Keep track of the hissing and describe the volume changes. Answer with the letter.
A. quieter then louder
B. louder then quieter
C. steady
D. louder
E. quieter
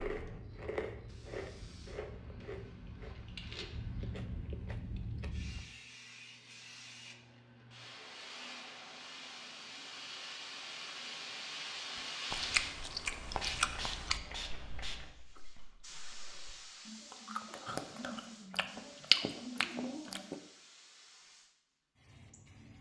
B.